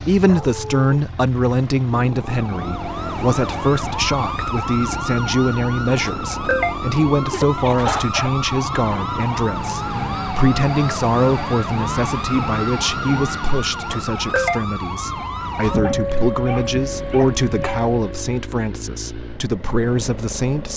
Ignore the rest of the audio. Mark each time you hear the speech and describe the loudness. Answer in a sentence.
The speech can be heard from 0.0 to 20.7 s, at a steady volume.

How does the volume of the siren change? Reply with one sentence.
The volume of the siren stays about the same.